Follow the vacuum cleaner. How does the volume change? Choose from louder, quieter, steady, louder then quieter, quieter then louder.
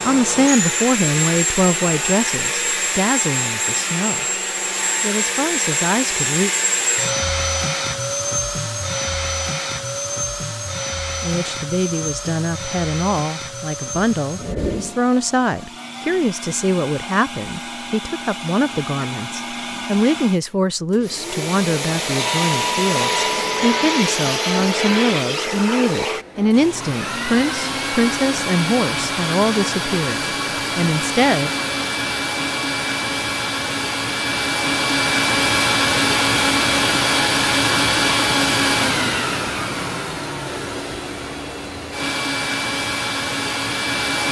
quieter then louder.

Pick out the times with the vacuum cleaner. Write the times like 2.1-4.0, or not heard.
0.0-44.2.